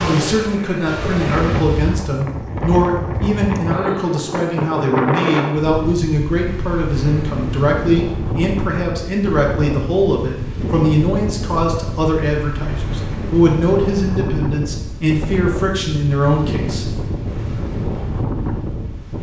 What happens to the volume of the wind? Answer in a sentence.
The volume of the wind stays about the same.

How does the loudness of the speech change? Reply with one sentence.
The volume of the speech stays about the same.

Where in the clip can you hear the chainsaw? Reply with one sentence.
The chainsaw can be heard from 0.0 to 1.6 s.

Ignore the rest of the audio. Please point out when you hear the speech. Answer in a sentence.
You can hear the speech from 0.1 to 16.9 s.